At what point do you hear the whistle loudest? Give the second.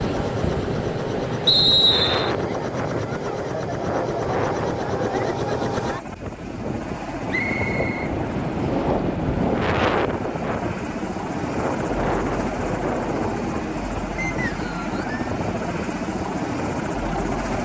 2 s.